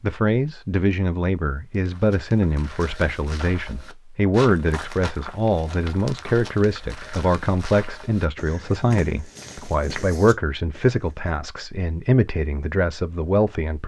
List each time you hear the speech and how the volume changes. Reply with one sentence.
The speech can be heard from 0.0 to 13.8 s, at a steady volume.